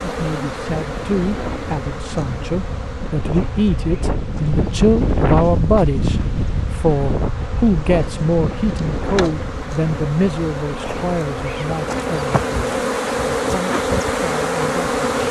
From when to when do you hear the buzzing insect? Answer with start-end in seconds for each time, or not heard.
0.0-15.2.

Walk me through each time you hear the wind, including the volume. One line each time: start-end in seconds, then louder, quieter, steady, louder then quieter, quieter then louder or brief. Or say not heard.
0.0-15.2 louder then quieter.